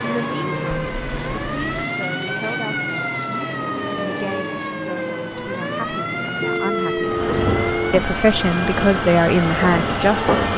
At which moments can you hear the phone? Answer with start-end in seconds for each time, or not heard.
0.7-1.9, 6.4-8.0.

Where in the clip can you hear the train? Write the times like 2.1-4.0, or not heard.
7.0-10.5.